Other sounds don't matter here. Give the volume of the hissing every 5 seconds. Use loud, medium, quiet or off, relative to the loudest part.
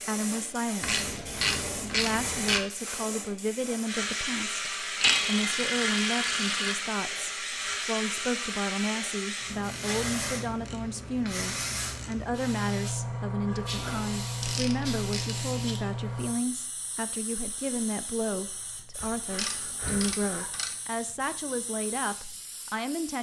loud, loud, loud, medium, quiet.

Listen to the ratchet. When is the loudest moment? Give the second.
5 s.